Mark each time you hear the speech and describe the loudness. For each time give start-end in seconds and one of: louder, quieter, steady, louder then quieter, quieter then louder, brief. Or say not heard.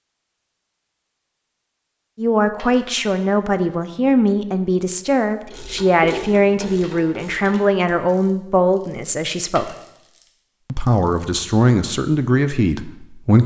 2.1-9.8 steady
10.7-13.4 brief.